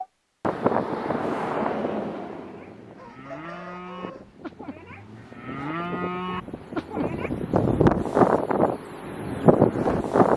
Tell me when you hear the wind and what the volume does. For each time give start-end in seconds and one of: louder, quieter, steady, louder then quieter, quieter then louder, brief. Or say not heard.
0.0-10.3 quieter then louder.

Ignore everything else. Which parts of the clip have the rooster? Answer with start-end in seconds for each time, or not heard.
3.0-4.3.